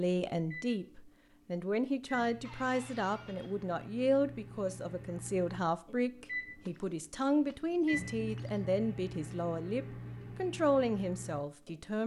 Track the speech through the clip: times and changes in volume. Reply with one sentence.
You can hear the speech from 0.0 to 12.0 s, at a steady volume.